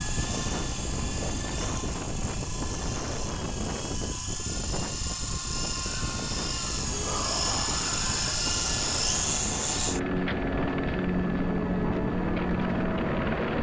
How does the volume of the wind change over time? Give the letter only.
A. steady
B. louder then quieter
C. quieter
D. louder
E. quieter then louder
A.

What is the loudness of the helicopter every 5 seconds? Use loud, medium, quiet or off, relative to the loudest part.
medium, loud, loud.